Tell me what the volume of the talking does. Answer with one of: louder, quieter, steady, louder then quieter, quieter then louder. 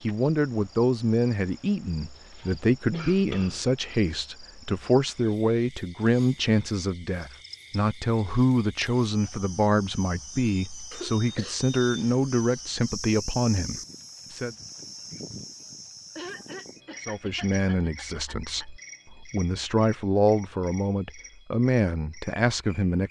steady.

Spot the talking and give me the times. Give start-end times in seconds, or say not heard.
0.0-14.6, 17.0-23.0.